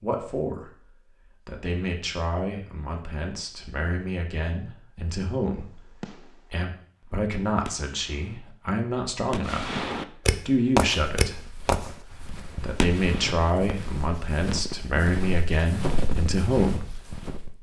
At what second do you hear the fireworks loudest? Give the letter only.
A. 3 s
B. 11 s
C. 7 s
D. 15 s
B.